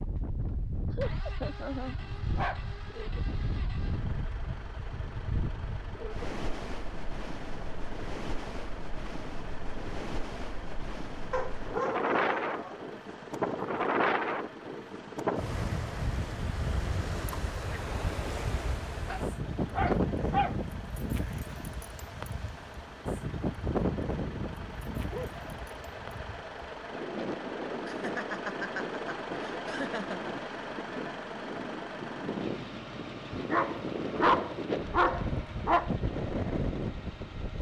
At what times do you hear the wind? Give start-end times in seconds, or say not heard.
0.0-37.5.